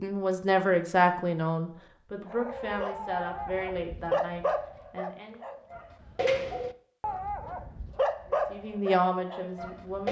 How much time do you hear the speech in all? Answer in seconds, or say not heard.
7 s.